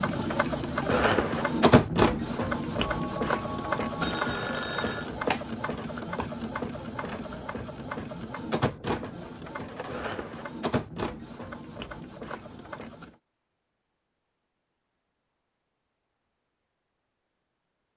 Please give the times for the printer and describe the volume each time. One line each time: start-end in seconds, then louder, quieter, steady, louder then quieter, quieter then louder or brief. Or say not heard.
0.0-13.2 quieter.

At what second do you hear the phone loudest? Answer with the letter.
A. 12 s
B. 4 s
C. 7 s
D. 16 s
B.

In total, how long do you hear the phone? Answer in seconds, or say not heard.
2 s.